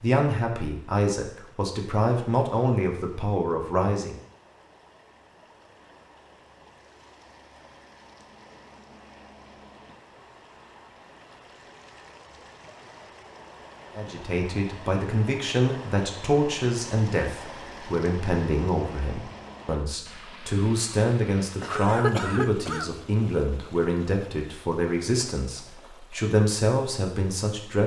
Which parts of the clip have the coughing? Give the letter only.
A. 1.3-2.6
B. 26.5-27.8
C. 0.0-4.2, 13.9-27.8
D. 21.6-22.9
D.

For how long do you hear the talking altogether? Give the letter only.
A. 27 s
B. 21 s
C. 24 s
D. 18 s
D.